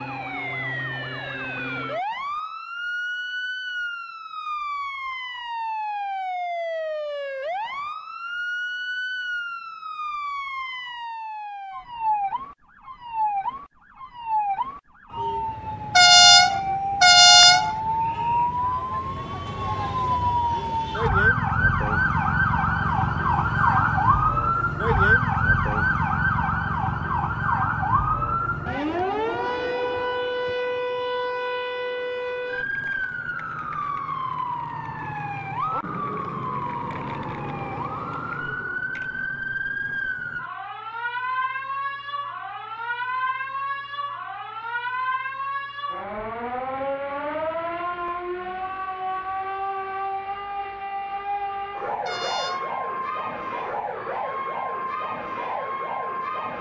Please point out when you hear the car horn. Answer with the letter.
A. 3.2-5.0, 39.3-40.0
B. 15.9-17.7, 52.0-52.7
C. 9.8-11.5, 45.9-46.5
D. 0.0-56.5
B.